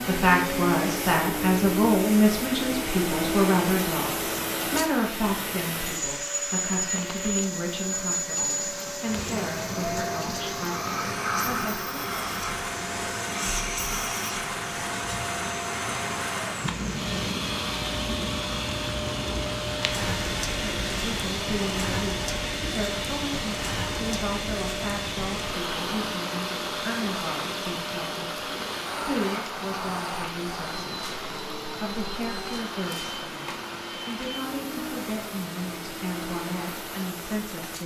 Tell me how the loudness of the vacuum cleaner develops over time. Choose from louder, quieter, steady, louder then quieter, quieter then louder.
quieter.